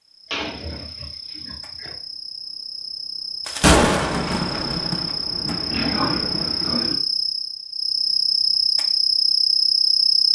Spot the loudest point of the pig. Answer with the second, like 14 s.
6 s.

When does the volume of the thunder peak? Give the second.
4 s.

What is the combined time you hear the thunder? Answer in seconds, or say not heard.
3 s.